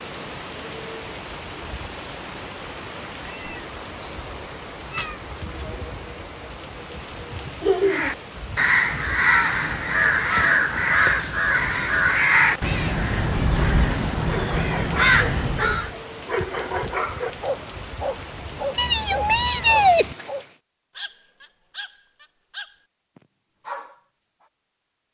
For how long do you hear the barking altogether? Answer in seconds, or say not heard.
10 s.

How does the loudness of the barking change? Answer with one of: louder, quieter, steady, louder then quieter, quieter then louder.
quieter.